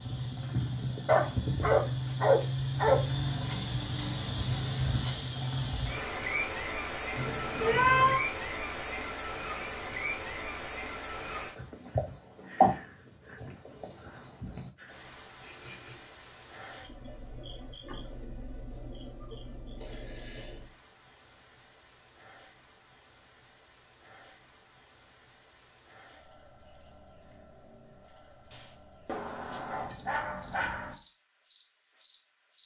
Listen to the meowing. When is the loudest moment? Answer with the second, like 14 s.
8 s.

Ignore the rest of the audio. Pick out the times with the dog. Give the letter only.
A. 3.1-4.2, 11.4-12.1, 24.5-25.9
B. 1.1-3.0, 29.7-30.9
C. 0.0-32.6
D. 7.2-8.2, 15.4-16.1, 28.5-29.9
B.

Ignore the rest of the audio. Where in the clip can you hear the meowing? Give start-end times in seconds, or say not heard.
7.2-8.2, 15.4-16.1, 28.5-29.9.